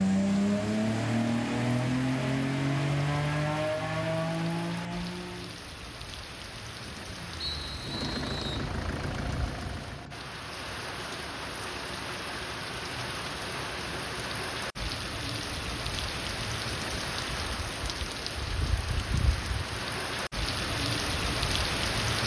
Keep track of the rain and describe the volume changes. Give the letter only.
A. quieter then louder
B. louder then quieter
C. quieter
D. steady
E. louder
E.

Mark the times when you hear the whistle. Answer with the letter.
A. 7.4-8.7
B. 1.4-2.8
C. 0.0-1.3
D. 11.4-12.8
A.